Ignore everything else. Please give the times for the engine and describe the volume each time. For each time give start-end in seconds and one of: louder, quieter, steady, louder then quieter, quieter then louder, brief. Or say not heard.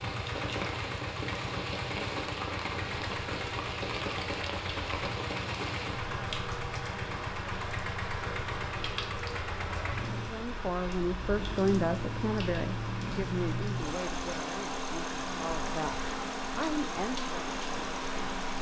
0.0-18.5 steady.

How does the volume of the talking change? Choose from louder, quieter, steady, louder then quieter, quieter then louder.
quieter then louder.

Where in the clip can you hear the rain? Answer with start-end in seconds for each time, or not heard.
0.0-18.5.